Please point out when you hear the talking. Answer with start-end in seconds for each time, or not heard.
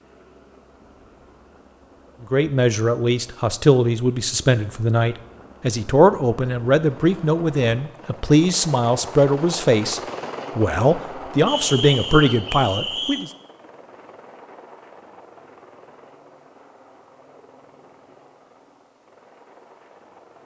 2.2-13.3.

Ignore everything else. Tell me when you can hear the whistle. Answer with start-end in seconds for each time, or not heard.
11.4-13.2.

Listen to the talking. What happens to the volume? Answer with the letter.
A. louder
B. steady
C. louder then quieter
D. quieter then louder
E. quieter
B.